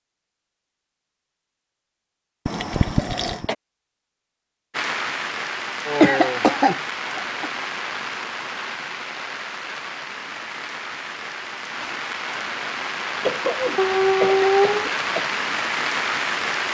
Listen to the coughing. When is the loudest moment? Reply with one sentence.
The volume of the coughing peaks at 6 seconds.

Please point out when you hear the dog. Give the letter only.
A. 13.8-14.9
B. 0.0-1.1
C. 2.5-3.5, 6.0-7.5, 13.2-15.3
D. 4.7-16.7
A.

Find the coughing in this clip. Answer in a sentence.
You can hear the coughing from 2.5 to 3.5 s, from 6.0 to 7.5 s and from 13.2 to 15.3 s.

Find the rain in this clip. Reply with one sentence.
You can hear the rain from 4.7 to 16.7 s.